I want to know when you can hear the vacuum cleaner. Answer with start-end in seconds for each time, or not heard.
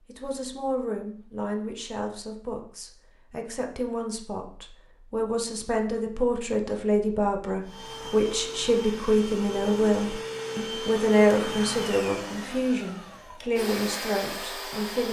7.6-15.0.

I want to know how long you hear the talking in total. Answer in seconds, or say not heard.
15 s.